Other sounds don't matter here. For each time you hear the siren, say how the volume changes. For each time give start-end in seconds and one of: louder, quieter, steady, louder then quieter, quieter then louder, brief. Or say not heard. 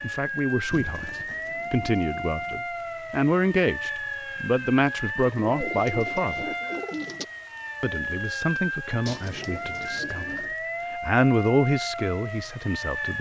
0.0-13.1 steady.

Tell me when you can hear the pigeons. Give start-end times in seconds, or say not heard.
0.7-2.6, 5.4-7.2, 9.1-10.6.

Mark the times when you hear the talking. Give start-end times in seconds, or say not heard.
0.0-6.5, 7.8-13.1.